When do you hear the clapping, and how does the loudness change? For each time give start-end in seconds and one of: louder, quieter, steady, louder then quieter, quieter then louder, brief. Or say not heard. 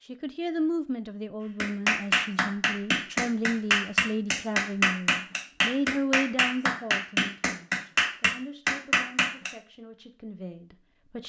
1.6-9.5 steady.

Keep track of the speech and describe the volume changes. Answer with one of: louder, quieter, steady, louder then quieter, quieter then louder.
quieter.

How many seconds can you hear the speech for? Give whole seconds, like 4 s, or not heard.
11 s.